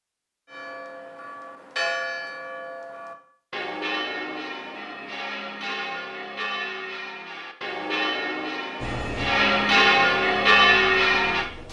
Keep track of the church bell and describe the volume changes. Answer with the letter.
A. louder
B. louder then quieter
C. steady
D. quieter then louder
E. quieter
A.